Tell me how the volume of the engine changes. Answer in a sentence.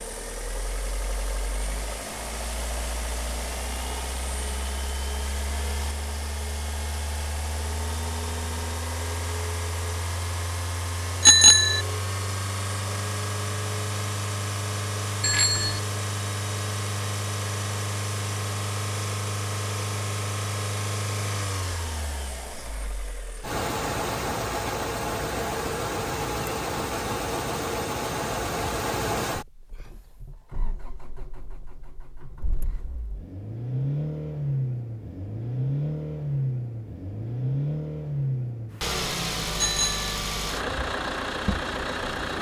The loudness of the engine goes up.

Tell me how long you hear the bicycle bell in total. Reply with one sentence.
The bicycle bell can be heard for 2 seconds in total.